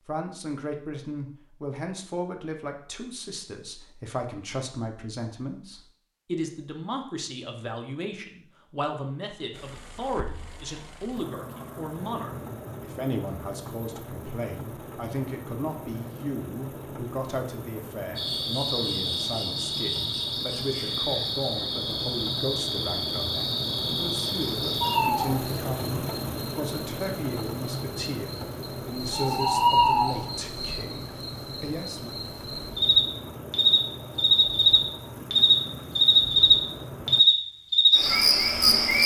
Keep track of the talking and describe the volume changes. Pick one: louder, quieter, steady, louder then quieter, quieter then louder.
steady.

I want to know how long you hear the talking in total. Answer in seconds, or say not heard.
32 s.